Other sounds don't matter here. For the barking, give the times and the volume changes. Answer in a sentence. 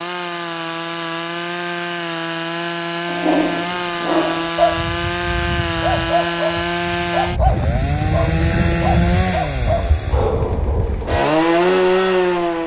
The barking can be heard from 3.0 to 11.3 s, at a steady volume.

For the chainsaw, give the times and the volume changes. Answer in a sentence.
You can hear the chainsaw from 0.0 to 12.6 s, getting louder.